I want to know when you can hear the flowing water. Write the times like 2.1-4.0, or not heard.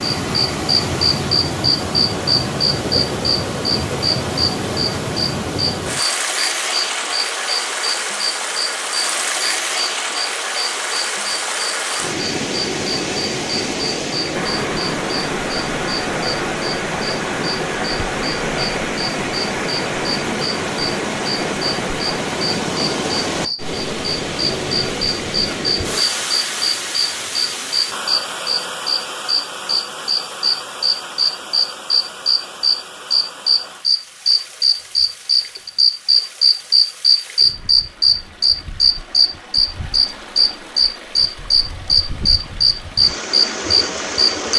0.0-44.5.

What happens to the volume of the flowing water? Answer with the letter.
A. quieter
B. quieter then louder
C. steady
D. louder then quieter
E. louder
A.